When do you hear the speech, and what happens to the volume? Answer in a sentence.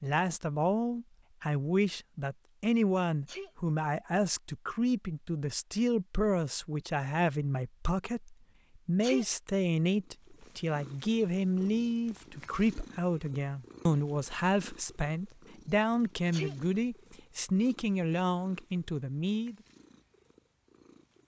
The speech can be heard from 0.0 to 19.6 s, at a steady volume.